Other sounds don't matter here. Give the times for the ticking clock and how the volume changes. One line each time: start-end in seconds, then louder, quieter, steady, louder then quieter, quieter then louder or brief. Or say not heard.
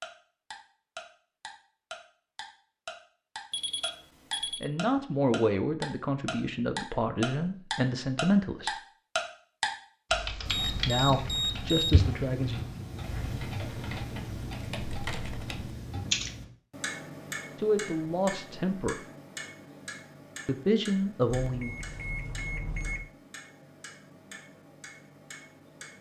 0.0-25.9 louder then quieter.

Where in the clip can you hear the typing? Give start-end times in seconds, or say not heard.
10.1-16.3.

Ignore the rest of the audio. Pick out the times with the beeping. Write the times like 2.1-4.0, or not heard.
3.5-4.7, 10.4-12.1, 21.4-23.1.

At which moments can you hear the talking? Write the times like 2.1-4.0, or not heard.
4.6-8.7, 10.8-12.7, 17.6-19.0, 20.4-21.7.